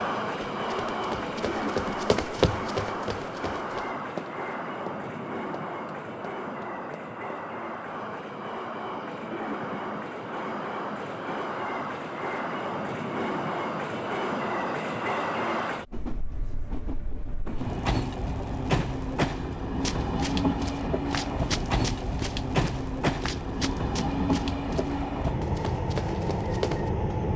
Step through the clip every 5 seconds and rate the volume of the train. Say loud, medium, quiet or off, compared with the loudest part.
loud, medium, loud, loud, loud, loud.